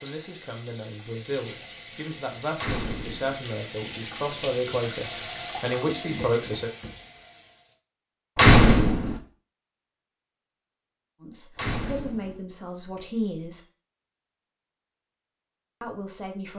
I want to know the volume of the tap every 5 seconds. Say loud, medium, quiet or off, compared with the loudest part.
loud, loud, off, off.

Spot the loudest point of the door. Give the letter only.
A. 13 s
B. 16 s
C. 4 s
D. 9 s
D.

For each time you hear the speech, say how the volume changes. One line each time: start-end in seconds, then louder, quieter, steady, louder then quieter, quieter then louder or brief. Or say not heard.
0.0-6.7 louder
11.2-13.6 brief
15.8-16.5 brief.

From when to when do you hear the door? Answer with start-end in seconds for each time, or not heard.
2.5-3.4, 8.3-9.2, 11.6-12.4.